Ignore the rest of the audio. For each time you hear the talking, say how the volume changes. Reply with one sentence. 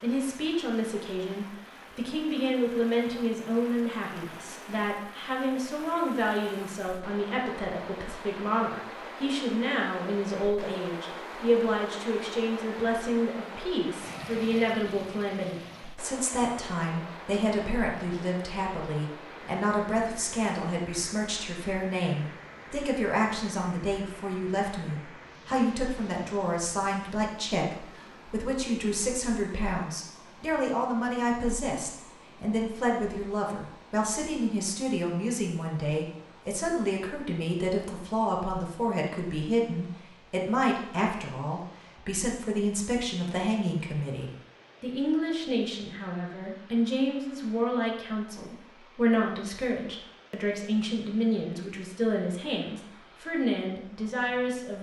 You can hear the talking from 0.0 to 54.7 s, at a steady volume.